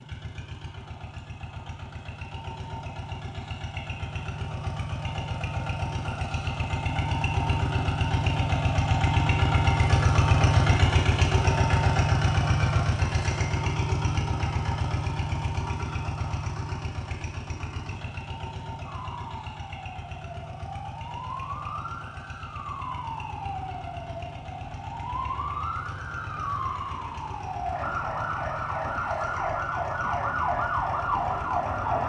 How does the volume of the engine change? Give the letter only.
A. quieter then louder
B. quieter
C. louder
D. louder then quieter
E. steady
D.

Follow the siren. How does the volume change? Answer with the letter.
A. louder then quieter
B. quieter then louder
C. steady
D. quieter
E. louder
E.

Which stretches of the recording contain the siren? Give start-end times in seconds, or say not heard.
18.9-32.0.